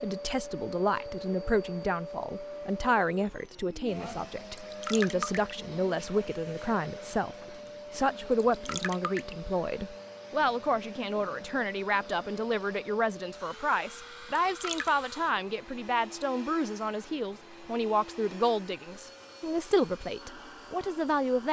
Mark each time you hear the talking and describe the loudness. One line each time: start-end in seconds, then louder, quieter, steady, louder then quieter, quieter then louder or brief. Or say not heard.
0.0-21.4 steady.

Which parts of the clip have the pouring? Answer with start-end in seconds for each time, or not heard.
4.5-5.5, 8.5-9.3, 14.3-14.9.